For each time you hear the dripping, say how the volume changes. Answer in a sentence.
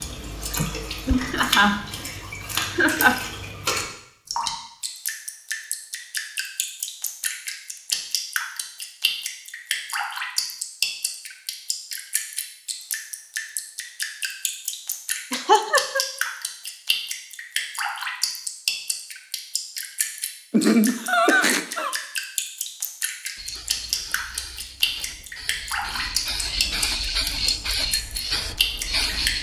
You can hear the dripping from 0.0 to 29.3 s, at a steady volume.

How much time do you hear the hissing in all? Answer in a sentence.
You can hear the hissing for 6 seconds altogether.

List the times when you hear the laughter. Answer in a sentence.
You can hear the laughter from 0.6 to 3.2 s, from 15.3 to 16.0 s and from 20.5 to 21.9 s.